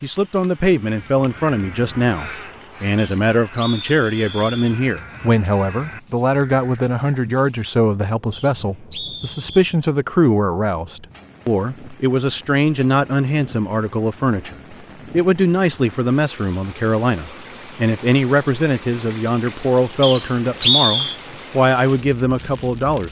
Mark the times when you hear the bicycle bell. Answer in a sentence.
The bicycle bell can't be heard in this clip.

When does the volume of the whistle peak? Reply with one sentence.
The loudest moment of the whistle is at 21 seconds.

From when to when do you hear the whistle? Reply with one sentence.
The whistle can be heard from 3.0 to 4.8 s, from 8.3 to 9.7 s and from 20.0 to 21.1 s.